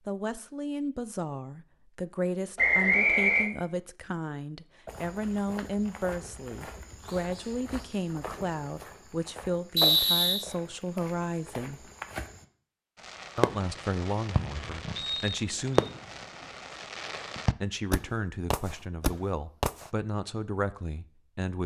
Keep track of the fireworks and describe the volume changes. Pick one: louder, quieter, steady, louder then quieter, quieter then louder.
quieter then louder.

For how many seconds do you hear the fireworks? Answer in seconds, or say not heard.
7 s.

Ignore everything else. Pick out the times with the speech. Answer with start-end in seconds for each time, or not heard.
0.1-11.9, 13.3-15.9, 17.6-21.6.